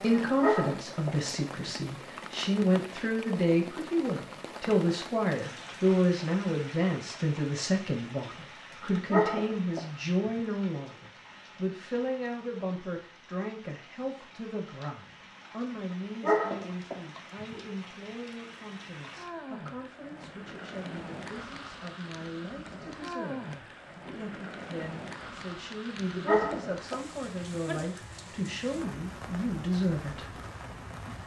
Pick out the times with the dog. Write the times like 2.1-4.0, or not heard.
0.4-1.7, 9.1-10.4, 16.2-17.6, 26.2-27.6.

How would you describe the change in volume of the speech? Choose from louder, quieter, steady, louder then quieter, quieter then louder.
quieter then louder.